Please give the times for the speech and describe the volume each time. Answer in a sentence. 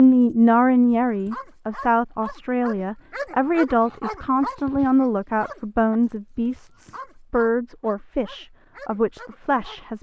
You can hear the speech from 0.0 to 9.9 s, getting quieter.